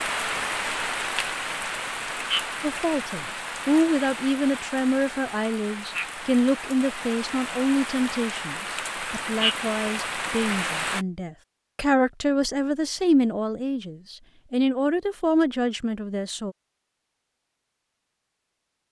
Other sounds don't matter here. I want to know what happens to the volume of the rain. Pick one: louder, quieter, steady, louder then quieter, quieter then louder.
quieter then louder.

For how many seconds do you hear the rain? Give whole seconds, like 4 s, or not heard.
11 s.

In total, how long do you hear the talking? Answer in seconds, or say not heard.
14 s.